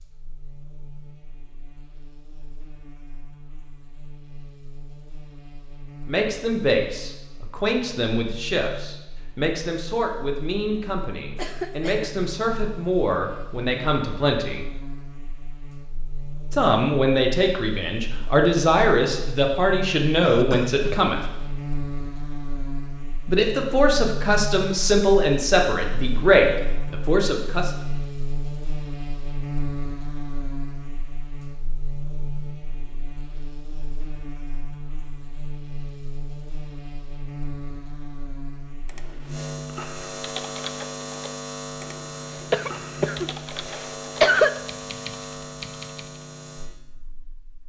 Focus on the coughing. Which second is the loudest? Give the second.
44 s.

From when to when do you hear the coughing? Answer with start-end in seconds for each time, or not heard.
11.3-12.2, 20.2-20.9, 42.5-44.5.